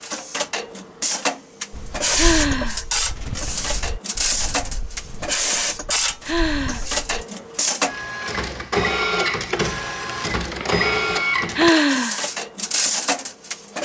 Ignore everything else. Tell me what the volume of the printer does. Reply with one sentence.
The volume of the printer stays about the same.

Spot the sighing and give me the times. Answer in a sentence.
You can hear the sighing from 2.1 to 2.9 s, from 6.2 to 6.8 s and from 11.6 to 12.2 s.